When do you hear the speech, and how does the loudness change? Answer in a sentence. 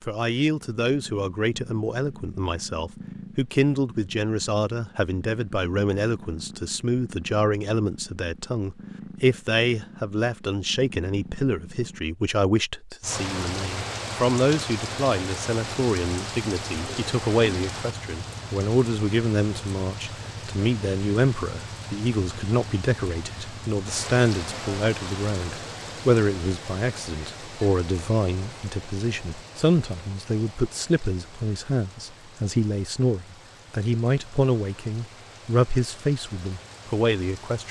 The speech can be heard from 0.0 to 37.6 s, at a steady volume.